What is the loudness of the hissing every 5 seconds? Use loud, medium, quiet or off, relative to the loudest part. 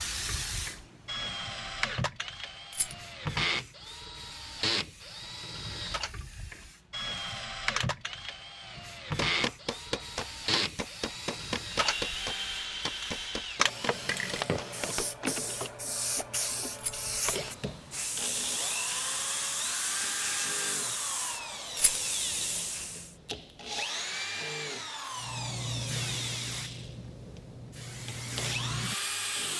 medium, medium, loud, loud, loud, loud.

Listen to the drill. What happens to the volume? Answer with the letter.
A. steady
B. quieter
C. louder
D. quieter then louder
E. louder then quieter
A.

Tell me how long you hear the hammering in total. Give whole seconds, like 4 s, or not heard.
6 s.